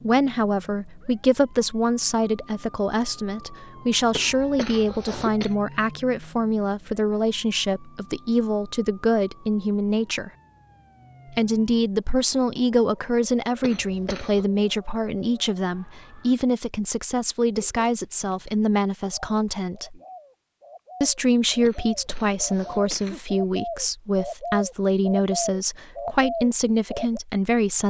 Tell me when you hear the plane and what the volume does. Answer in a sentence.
You can't hear the plane here.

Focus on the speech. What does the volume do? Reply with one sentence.
The volume of the speech stays about the same.